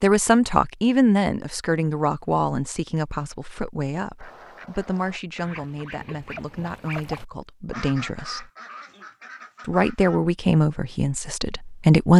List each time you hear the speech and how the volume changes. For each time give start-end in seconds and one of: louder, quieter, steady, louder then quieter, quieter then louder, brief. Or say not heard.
0.0-8.5 quieter
9.7-12.1 brief.